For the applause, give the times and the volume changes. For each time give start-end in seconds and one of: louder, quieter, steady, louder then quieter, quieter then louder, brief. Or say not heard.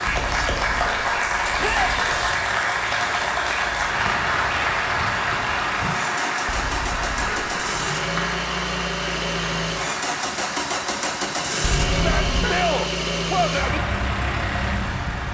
0.0-15.2 quieter.